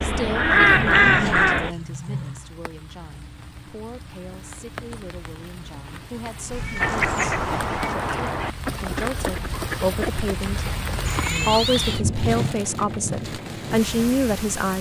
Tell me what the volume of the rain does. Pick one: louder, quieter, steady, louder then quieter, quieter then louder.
louder.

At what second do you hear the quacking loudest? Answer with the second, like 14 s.
1 s.